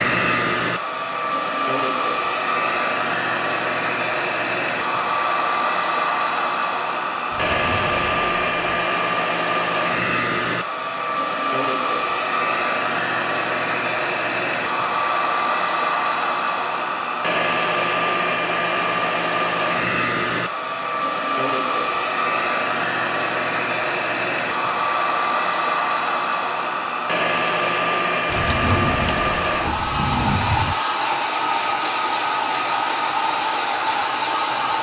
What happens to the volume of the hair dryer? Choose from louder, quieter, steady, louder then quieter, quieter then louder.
steady.